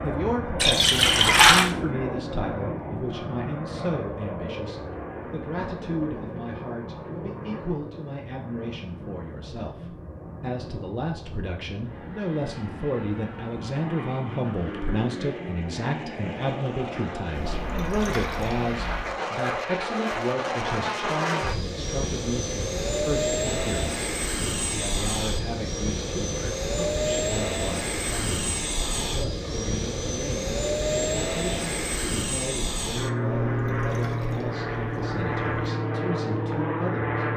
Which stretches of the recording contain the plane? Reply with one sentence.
The plane can be heard from 0.0 to 37.3 s.